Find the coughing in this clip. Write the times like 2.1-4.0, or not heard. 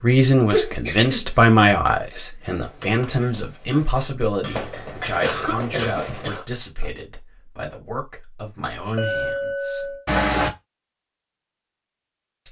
0.5-1.3, 5.2-6.5, 10.1-10.5.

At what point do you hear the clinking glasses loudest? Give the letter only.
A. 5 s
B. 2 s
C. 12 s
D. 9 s
D.